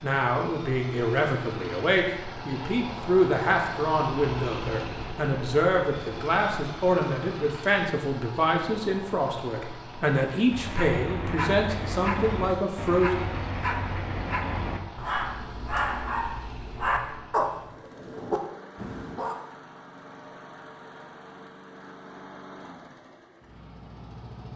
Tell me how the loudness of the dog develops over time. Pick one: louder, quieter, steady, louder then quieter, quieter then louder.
steady.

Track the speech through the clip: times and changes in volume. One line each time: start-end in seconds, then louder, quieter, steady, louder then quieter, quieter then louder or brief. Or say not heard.
0.0-13.3 steady.